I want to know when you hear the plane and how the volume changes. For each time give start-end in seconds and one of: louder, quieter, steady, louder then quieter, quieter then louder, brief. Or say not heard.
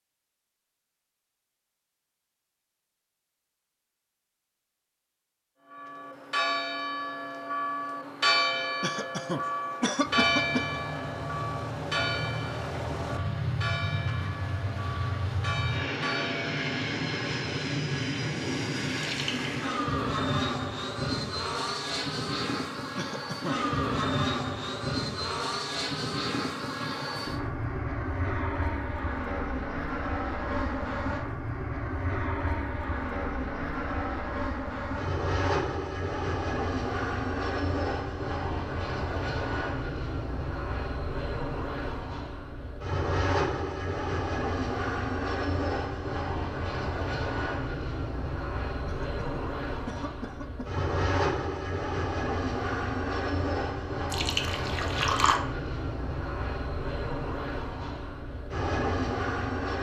10.0-59.7 steady.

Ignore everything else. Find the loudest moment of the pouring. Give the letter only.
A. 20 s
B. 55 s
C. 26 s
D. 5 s
B.